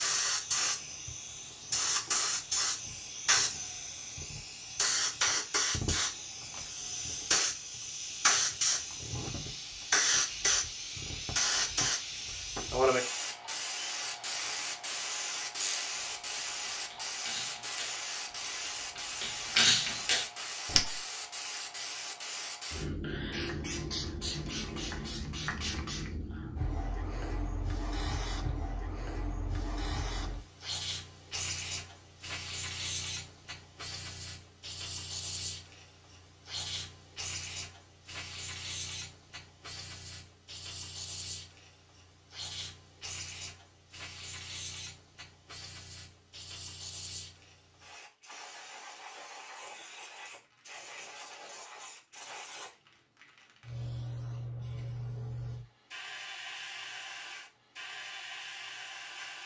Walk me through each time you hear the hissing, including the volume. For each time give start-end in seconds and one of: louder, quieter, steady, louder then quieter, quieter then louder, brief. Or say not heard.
0.0-59.4 quieter.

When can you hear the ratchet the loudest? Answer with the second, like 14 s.
20 s.